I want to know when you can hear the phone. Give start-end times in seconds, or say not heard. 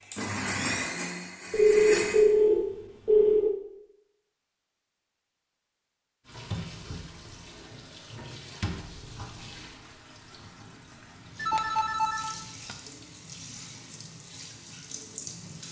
1.5-3.5, 11.3-12.8.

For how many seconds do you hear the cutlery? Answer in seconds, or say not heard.
not heard.